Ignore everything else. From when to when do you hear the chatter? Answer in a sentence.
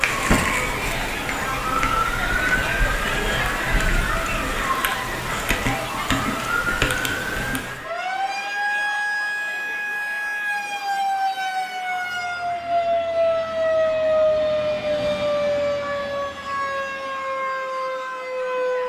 You can hear the chatter from 0.0 to 18.8 s.